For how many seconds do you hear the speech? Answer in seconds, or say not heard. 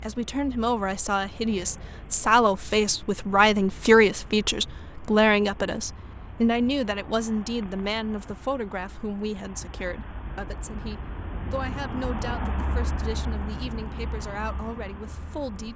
16 s.